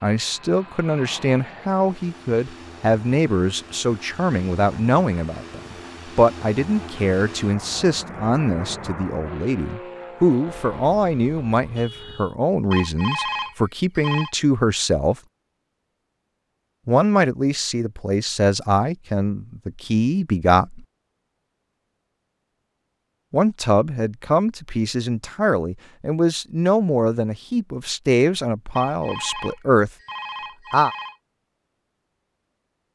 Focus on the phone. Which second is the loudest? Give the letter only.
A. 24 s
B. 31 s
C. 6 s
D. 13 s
D.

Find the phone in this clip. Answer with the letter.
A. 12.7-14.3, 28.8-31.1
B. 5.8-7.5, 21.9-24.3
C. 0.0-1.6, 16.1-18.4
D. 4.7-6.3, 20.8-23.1
A.